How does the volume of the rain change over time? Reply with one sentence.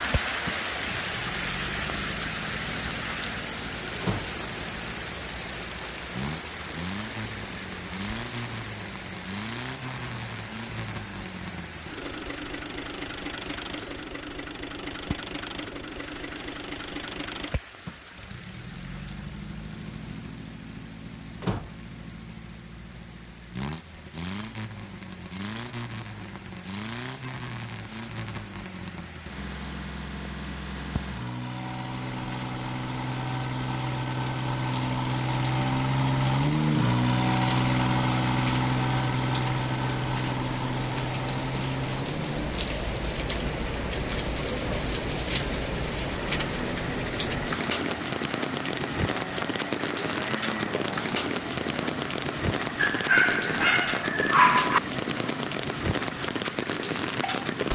The loudness of the rain goes down, then up.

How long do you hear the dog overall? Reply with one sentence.
The dog can be heard for 2 seconds in total.